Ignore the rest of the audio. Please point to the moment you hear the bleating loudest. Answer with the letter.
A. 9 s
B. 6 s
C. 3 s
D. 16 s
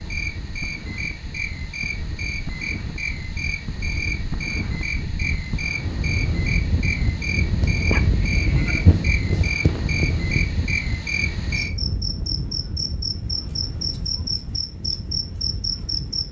A.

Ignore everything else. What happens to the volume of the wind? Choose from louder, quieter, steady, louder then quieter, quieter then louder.
louder then quieter.